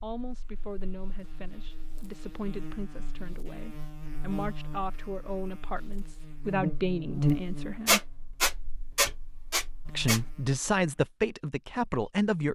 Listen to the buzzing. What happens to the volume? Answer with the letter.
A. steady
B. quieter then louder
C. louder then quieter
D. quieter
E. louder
C.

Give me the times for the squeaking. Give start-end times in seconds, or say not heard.
7.8-10.2.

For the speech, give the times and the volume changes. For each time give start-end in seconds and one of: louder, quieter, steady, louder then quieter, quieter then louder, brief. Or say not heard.
0.0-8.1 louder
9.8-12.5 brief.